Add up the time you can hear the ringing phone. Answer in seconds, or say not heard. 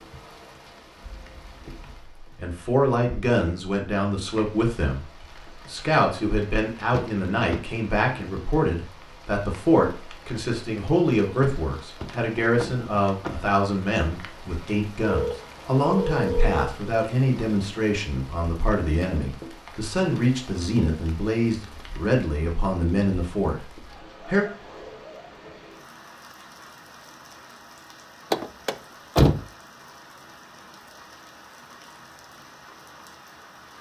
2 s.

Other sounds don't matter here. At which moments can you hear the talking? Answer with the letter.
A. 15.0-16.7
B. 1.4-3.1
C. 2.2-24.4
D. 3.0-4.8
C.